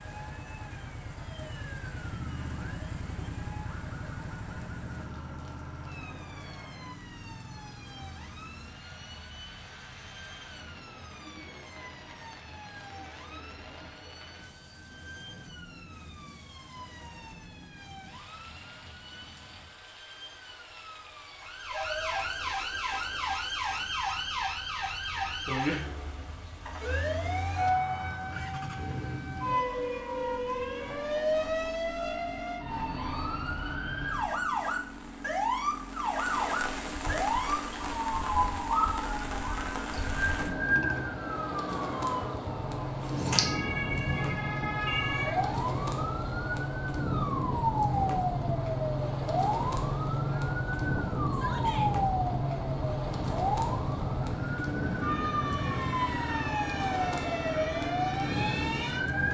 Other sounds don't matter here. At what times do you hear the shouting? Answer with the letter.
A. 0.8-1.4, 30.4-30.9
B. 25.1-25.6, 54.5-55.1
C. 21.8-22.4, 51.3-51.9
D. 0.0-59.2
C.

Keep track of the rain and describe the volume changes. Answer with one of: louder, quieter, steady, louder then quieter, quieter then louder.
louder.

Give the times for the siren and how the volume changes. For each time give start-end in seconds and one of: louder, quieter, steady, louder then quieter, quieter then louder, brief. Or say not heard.
0.0-59.2 louder.